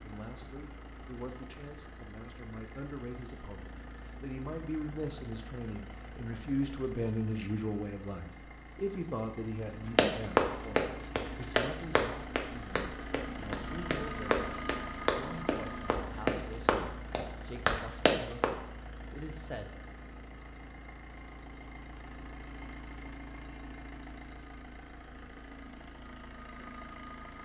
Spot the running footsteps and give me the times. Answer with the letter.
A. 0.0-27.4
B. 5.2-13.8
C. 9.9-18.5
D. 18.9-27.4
C.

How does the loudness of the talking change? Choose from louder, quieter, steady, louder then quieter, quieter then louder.
louder then quieter.